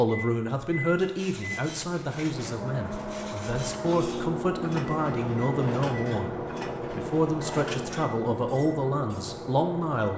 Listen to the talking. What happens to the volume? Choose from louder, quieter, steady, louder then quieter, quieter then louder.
steady.